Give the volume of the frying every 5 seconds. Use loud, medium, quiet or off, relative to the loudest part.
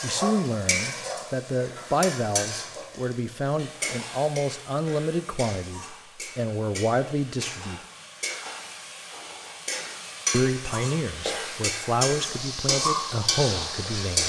medium, medium, loud.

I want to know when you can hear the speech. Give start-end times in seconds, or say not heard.
0.0-7.8, 10.3-14.2.